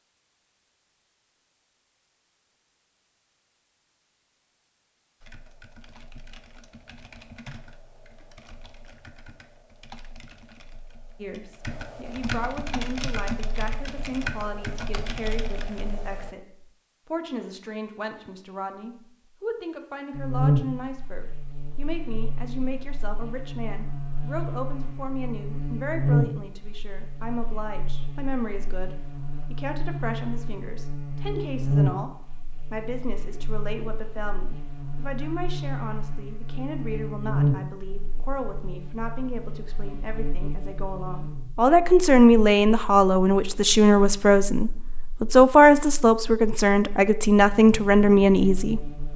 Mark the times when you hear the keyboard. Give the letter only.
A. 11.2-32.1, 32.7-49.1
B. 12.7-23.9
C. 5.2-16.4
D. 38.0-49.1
C.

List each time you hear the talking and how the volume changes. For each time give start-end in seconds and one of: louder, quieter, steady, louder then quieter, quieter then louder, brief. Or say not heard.
11.2-32.1 steady
32.7-49.1 louder.